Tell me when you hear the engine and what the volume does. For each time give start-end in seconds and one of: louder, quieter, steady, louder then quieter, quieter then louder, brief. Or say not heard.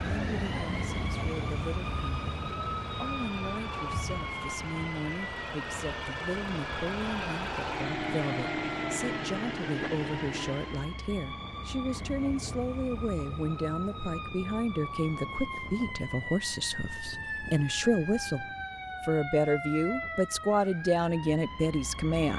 0.1-11.0 louder.